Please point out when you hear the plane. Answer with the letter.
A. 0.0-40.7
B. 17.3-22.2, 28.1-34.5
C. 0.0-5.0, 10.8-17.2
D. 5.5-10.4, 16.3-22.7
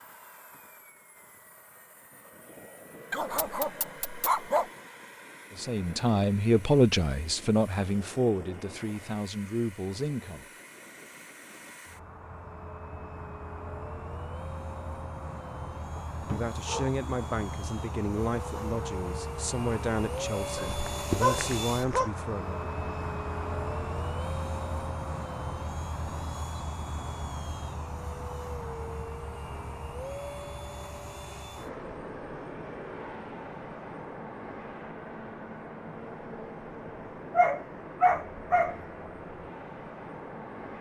A.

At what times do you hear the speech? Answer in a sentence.
You can hear the speech from 5.5 to 10.4 s and from 16.3 to 22.7 s.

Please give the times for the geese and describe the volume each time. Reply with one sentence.
You can't hear the geese here.